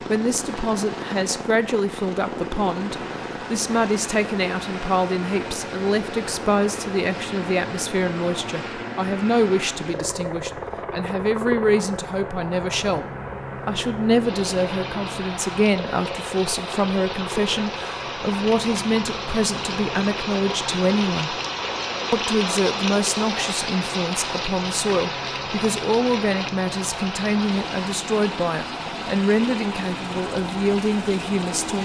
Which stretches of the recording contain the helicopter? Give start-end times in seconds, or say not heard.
0.0-31.8.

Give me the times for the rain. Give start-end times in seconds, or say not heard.
14.2-31.8.